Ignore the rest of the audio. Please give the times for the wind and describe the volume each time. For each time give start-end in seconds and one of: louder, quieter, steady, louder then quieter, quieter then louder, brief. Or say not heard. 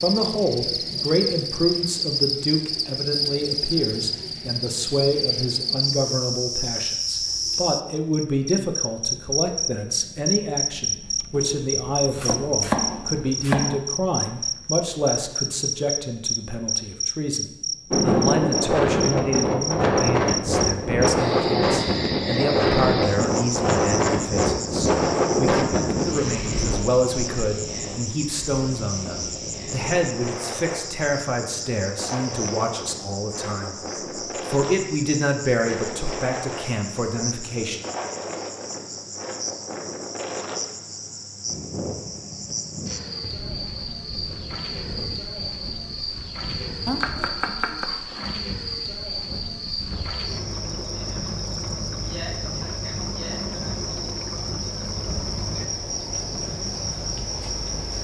17.9-57.9 quieter.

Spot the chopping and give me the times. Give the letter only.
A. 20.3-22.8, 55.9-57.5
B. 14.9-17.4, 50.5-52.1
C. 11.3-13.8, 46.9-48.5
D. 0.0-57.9
C.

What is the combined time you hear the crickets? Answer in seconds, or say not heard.
58 s.